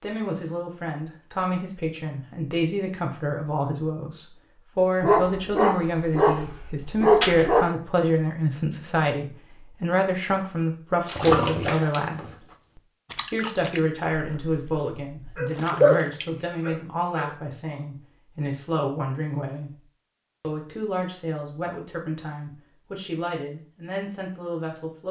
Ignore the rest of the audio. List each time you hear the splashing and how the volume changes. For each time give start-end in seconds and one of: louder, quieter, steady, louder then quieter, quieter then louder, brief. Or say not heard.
11.1-16.9 quieter then louder.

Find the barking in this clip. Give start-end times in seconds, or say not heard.
5.0-7.7, 15.3-17.3.